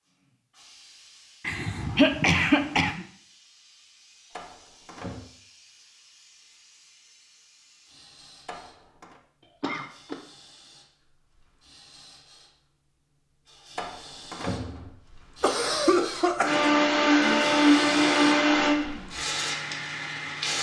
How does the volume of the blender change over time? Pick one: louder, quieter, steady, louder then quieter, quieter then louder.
quieter.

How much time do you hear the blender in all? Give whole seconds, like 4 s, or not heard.
4 s.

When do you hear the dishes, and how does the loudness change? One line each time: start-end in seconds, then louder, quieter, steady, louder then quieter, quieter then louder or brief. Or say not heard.
not heard.